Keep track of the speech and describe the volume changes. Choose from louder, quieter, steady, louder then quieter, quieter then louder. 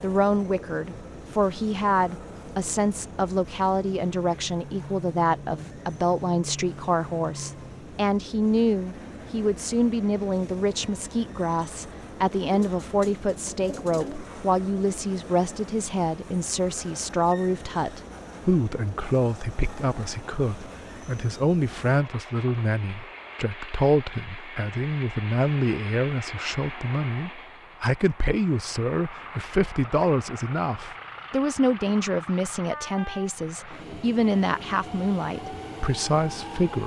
steady.